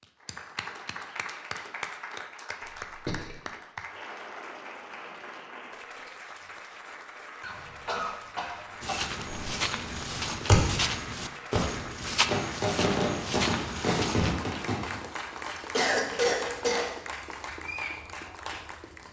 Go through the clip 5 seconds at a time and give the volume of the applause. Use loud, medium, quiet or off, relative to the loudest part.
loud, medium, loud, loud.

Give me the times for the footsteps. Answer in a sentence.
The footsteps can be heard from 8.8 to 14.3 s.